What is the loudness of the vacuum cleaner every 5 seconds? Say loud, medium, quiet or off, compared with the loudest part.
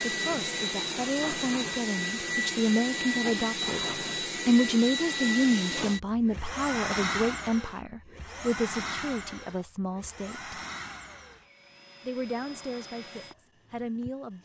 loud, loud, quiet.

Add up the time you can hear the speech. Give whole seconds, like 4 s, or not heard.
12 s.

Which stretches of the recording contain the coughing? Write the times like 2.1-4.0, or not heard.
not heard.